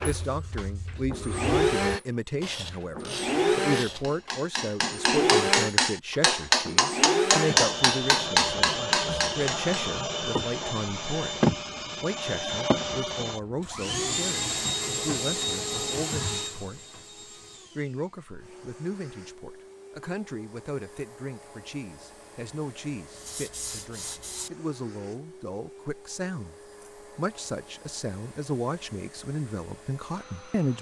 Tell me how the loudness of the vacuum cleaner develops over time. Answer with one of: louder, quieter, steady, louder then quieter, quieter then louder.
quieter.